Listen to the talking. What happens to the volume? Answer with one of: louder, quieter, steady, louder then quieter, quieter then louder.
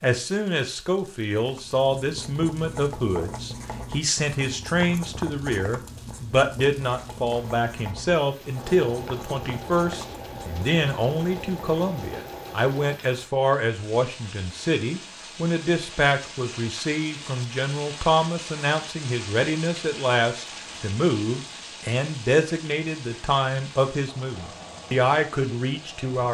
steady.